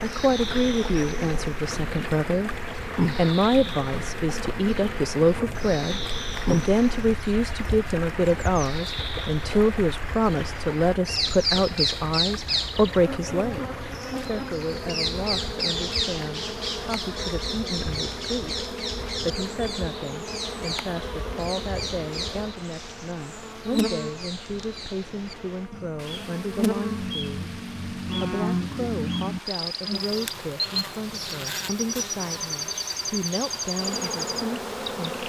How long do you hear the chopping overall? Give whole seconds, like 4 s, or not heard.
not heard.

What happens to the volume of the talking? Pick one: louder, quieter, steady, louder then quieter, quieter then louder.
quieter.